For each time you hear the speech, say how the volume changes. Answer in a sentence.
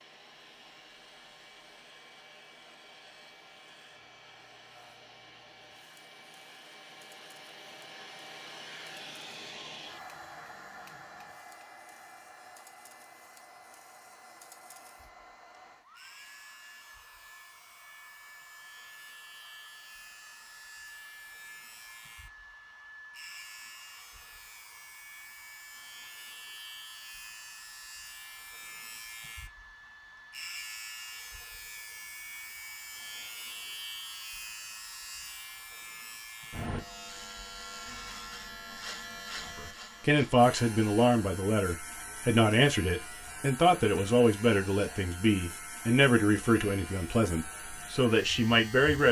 The speech can be heard from 39.5 to 49.0 s, at a steady volume.